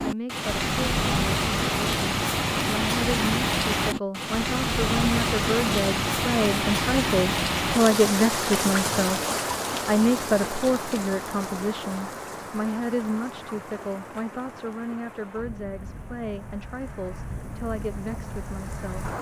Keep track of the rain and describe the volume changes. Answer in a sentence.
The loudness of the rain goes down.